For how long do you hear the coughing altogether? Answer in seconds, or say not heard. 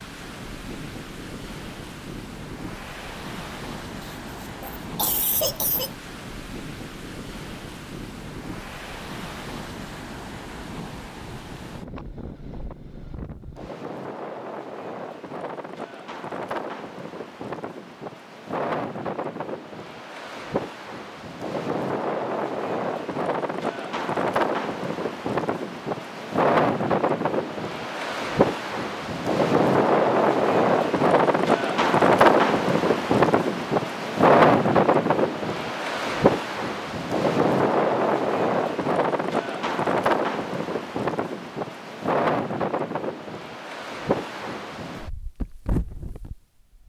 2 s.